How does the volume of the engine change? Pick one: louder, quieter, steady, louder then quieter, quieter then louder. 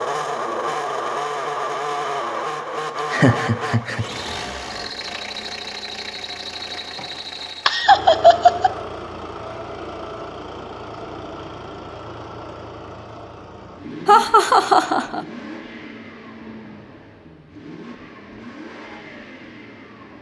quieter.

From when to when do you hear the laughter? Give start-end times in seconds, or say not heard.
3.1-4.0, 7.7-8.7, 14.1-15.2.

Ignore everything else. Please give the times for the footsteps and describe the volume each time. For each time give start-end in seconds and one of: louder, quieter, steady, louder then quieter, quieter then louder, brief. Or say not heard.
not heard.